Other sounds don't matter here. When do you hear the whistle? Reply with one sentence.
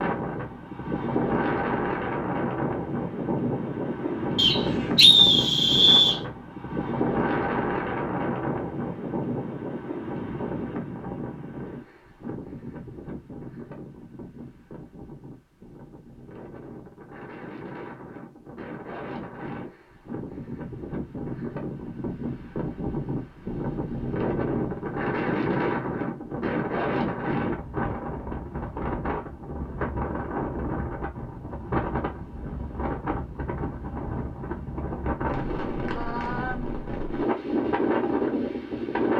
You can hear the whistle from 4.3 to 6.2 s.